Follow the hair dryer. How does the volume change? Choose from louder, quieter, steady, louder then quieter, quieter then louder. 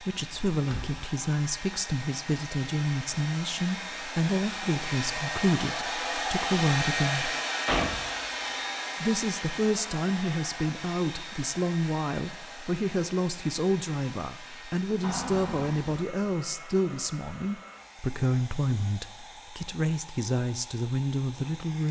louder then quieter.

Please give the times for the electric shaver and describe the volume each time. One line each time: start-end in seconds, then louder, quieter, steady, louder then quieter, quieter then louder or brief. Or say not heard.
not heard.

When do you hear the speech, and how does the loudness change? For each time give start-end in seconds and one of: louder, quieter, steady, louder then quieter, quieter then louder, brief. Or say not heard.
0.0-7.3 steady
9.0-21.8 steady.